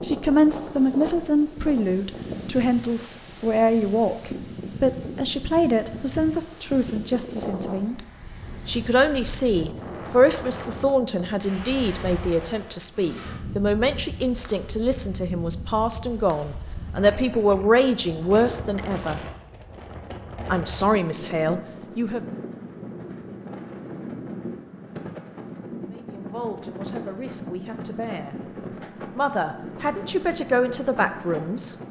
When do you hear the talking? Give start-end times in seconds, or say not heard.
0.0-8.1, 8.7-19.2, 20.4-22.2, 25.9-28.4, 29.1-31.8.